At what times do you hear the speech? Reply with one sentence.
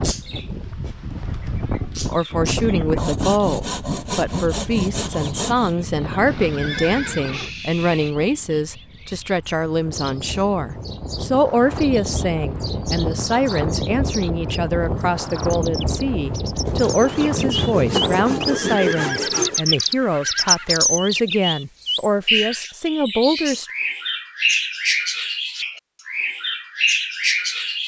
You can hear the speech from 2.0 to 23.6 s.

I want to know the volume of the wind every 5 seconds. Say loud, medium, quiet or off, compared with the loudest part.
loud, medium, loud, loud, off, off.